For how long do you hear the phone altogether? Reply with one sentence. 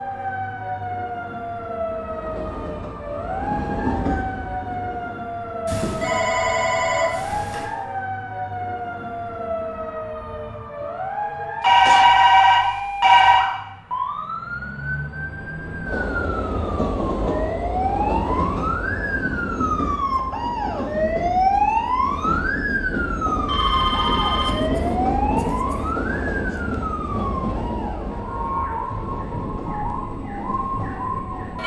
The phone can be heard for 5 seconds in total.